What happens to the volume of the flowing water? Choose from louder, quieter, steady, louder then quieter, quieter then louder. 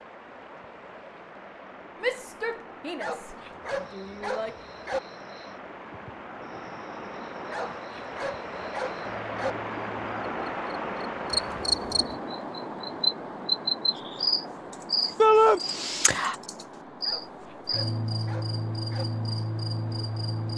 louder then quieter.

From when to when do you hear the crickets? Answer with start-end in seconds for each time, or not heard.
3.8-20.5.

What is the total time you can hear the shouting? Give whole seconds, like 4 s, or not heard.
3 s.